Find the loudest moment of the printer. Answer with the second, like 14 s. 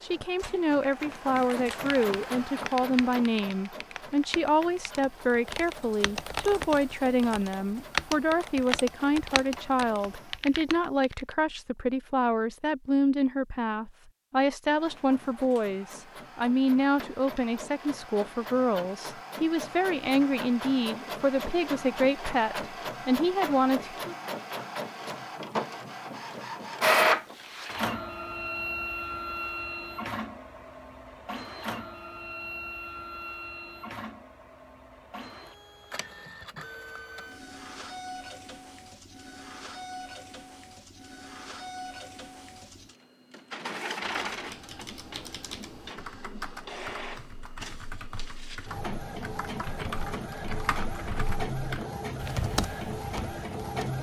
27 s.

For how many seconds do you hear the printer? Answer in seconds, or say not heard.
50 s.